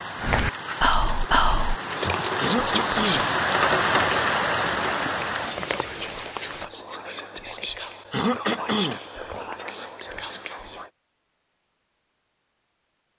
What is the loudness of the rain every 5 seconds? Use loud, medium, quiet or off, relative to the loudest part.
loud, medium, off.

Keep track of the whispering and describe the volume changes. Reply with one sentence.
The loudness of the whispering goes down.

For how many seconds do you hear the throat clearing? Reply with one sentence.
You can hear the throat clearing for 2 seconds altogether.